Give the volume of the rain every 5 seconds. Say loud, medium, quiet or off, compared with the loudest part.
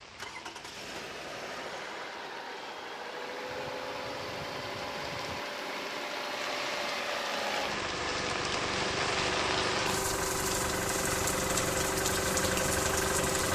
quiet, loud, loud.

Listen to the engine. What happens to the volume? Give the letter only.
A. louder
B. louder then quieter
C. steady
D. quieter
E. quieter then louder
A.